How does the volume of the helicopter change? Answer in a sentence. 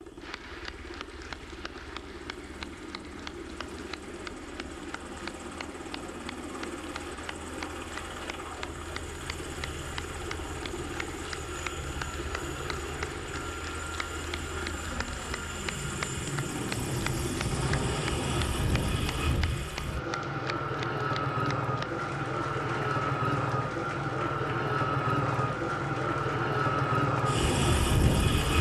The volume of the helicopter goes up.